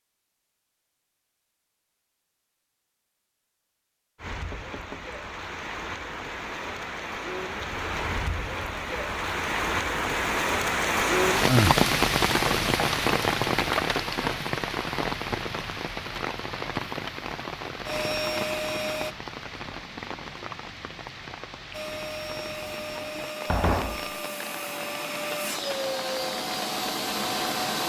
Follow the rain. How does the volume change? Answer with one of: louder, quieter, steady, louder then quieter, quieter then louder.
louder then quieter.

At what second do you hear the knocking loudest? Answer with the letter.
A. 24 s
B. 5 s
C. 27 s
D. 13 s
A.